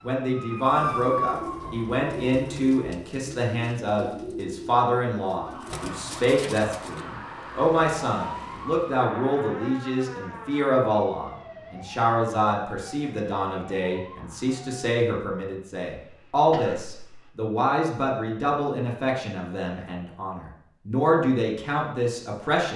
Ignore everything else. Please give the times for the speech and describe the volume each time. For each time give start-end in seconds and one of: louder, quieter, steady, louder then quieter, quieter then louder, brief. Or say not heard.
0.0-22.7 steady.